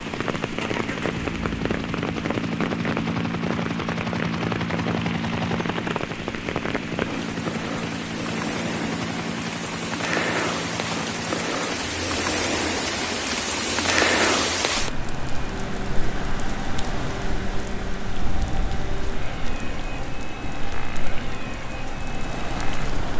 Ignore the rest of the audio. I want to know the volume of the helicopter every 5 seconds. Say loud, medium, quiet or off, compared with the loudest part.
loud, loud, medium, medium, medium.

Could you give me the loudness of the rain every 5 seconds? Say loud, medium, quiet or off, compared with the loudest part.
medium, medium, loud, medium, medium.